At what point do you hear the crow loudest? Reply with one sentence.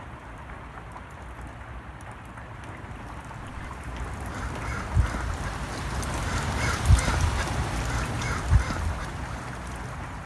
The loudest moment of the crow is at 7 seconds.